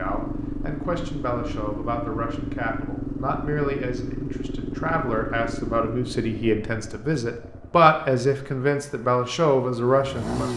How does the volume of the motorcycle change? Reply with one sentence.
The loudness of the motorcycle goes down.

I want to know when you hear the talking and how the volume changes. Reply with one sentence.
You can hear the talking from 0.0 to 10.5 s, getting louder.